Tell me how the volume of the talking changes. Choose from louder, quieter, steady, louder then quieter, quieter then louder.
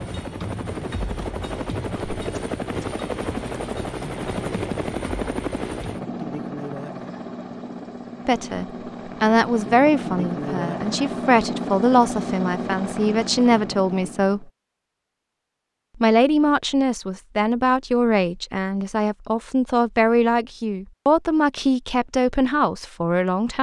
steady.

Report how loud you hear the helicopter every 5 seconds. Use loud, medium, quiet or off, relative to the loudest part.
loud, loud, loud, off, off.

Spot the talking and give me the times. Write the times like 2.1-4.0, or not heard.
8.2-14.4, 16.0-23.5.